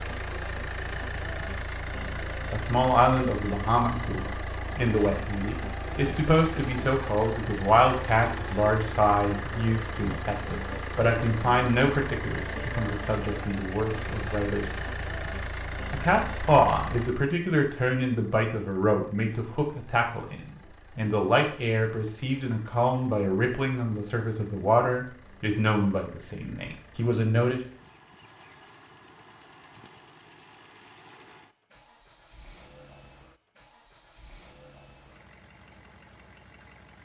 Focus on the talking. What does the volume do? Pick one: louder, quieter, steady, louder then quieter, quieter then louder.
steady.